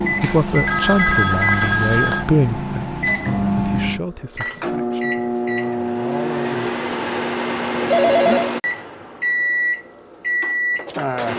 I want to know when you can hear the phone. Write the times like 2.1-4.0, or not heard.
0.2-2.2, 7.9-8.6.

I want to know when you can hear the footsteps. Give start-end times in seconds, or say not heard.
not heard.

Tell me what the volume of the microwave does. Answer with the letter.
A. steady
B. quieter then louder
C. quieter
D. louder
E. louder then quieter
A.